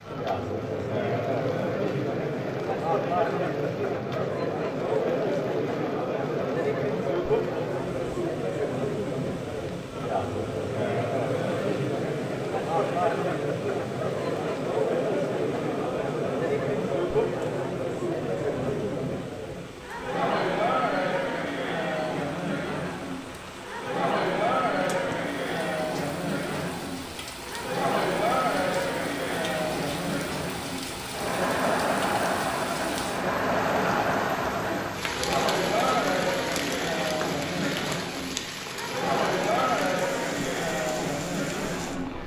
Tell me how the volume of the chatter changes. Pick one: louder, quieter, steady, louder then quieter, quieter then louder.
steady.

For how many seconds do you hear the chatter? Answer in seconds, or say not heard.
42 s.